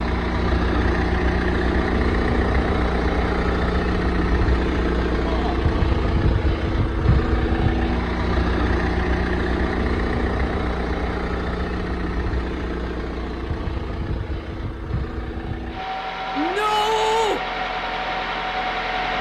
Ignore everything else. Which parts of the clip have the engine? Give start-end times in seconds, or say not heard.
0.0-19.1.